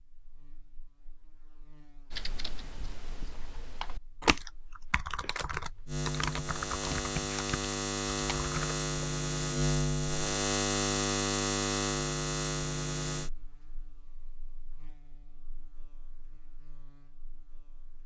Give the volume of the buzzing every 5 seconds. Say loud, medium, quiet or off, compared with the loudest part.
quiet, loud, loud, quiet.